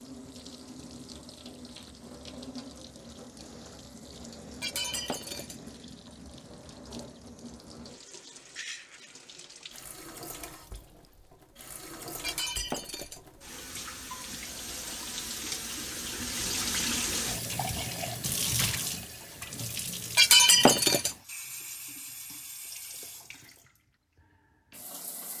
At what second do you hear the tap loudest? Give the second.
17 s.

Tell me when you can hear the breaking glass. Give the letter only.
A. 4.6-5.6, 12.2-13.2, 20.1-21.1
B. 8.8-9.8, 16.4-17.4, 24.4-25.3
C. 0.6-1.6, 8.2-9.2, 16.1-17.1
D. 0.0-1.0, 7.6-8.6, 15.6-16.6
A.